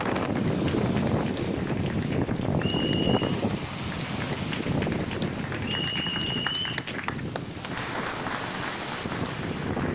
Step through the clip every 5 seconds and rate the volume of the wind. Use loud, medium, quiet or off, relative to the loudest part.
loud, medium.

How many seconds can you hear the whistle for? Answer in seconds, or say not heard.
2 s.